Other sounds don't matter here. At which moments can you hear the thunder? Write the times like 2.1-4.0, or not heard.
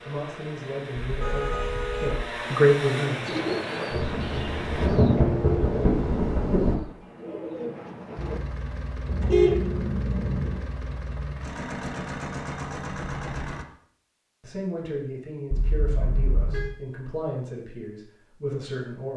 3.9-6.8.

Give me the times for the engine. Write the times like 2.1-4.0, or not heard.
0.0-4.9, 8.2-13.7.